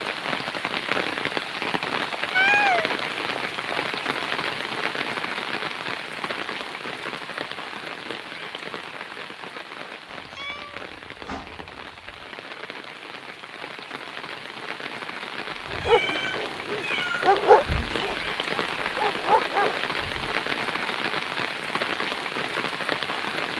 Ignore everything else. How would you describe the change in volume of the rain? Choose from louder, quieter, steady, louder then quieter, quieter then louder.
quieter then louder.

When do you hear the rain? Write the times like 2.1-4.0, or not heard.
0.0-23.5.